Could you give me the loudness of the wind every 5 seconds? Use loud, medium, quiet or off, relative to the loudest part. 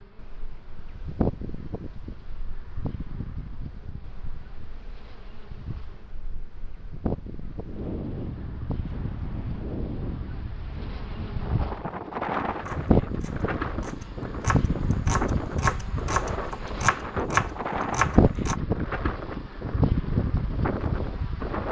quiet, medium, loud, loud, loud.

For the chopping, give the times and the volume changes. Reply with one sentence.
You can hear the chopping from 12.7 to 18.6 s, getting louder.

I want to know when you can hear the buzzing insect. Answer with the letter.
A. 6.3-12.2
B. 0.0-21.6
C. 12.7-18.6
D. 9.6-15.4
B.